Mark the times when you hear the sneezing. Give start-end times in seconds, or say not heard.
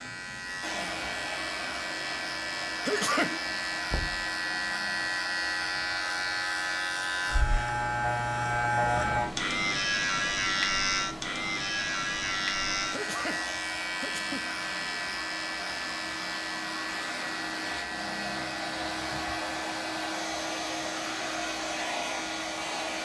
2.9-3.5, 12.9-14.6.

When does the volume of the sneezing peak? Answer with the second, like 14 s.
3 s.